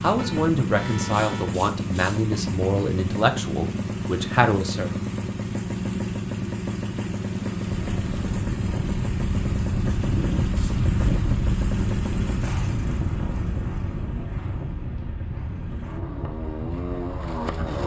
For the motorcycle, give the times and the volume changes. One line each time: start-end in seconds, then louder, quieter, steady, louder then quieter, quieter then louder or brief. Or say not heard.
0.0-17.8 quieter.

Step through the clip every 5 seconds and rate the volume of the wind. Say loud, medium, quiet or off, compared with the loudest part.
off, loud, loud, medium.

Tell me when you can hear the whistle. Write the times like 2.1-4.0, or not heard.
not heard.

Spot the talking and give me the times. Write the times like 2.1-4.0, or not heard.
0.0-5.0.